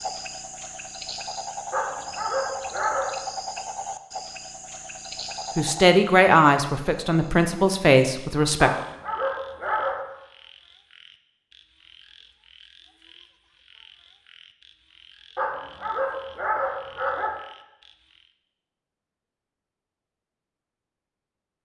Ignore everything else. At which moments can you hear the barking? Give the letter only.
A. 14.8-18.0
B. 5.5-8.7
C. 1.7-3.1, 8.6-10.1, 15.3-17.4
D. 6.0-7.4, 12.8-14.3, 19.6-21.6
C.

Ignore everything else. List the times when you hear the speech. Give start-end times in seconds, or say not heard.
5.5-8.7.